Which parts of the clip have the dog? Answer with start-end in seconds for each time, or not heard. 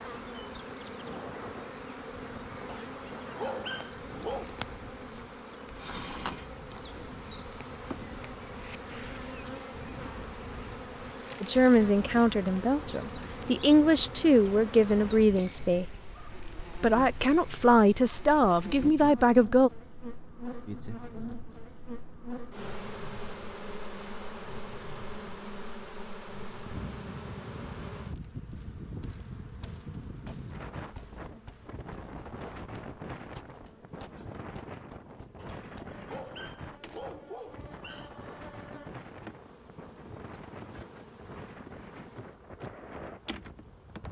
2.6-4.5, 35.4-38.1.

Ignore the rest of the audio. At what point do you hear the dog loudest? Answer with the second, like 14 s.
4 s.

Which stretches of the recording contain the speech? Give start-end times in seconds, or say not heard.
11.4-15.8, 16.8-19.7.